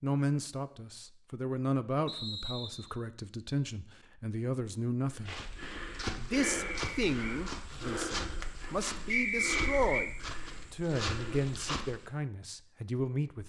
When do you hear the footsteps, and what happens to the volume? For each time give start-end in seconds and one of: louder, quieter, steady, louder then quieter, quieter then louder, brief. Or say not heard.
5.1-12.2 steady.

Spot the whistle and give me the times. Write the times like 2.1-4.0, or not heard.
2.0-2.9, 6.4-7.4, 9.1-10.1.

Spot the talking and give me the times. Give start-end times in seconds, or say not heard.
0.0-5.4, 6.2-10.1, 10.7-13.4.